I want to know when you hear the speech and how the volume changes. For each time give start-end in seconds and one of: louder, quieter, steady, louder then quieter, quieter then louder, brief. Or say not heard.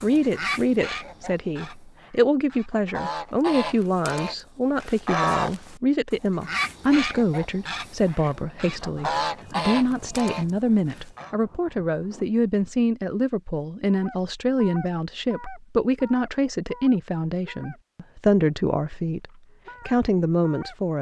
0.0-20.9 steady.